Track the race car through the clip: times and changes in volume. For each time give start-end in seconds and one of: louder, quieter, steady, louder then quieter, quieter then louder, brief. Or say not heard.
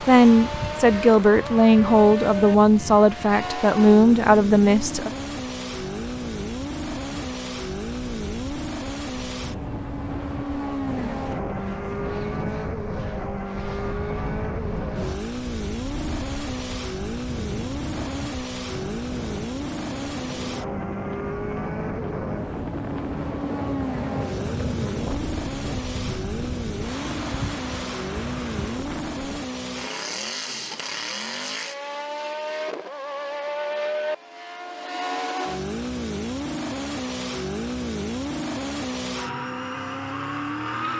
0.1-40.9 steady.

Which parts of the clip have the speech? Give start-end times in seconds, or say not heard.
0.0-5.1.